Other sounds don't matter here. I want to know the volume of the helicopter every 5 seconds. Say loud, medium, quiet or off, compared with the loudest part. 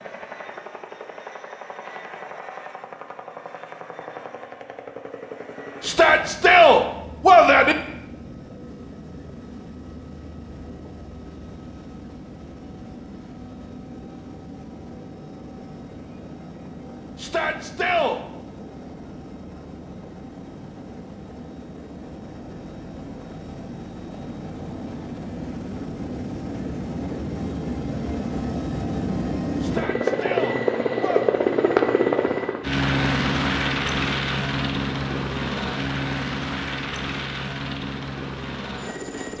quiet, quiet, quiet, quiet, quiet, medium, loud, medium.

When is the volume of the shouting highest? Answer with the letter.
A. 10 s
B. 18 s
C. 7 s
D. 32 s
C.